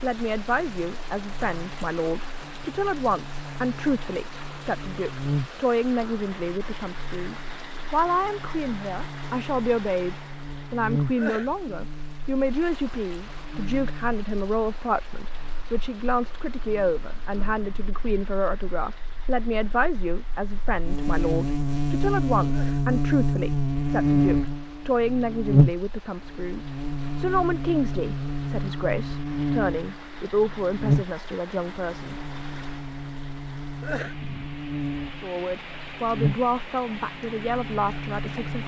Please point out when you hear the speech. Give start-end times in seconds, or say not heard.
0.0-32.1, 35.2-38.6.